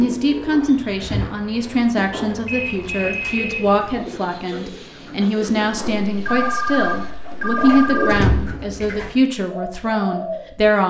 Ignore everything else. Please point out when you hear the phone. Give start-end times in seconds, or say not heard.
2.5-3.8, 6.0-8.3.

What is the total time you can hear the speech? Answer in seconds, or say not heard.
11 s.